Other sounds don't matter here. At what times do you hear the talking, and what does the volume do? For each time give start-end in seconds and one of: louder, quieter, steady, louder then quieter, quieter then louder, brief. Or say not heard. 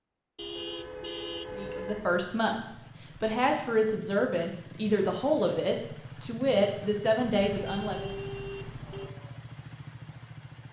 1.5-8.1 steady.